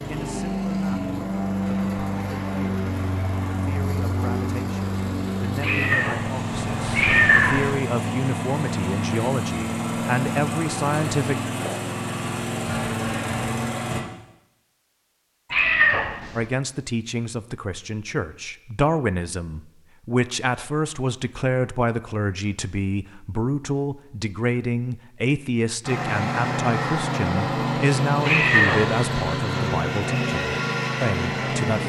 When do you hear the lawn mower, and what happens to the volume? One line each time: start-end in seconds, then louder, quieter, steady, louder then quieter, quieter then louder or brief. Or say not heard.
0.0-14.1 steady
25.8-31.8 steady.